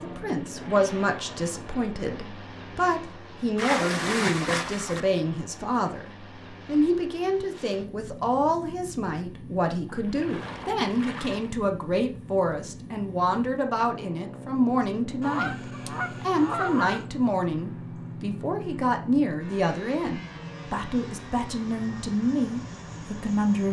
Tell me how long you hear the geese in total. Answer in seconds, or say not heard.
2 s.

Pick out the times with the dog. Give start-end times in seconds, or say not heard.
not heard.